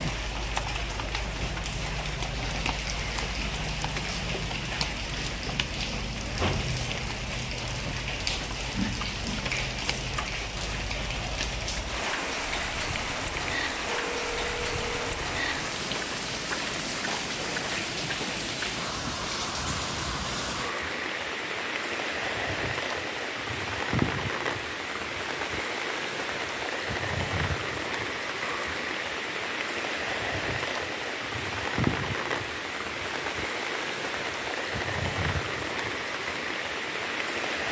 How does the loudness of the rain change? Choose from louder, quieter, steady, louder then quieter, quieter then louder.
steady.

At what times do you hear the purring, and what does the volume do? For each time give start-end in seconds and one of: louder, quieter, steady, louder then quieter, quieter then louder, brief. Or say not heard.
not heard.